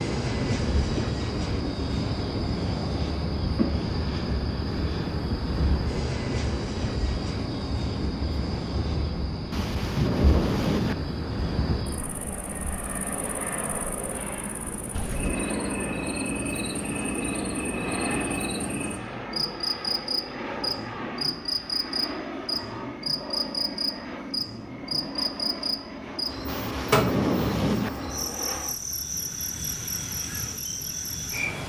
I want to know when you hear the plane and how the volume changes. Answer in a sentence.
You can hear the plane from 0.0 to 31.6 s, getting quieter.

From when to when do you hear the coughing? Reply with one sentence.
You can't hear the coughing here.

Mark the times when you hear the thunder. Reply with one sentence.
The thunder can be heard from 9.5 to 10.9 s and from 26.4 to 27.9 s.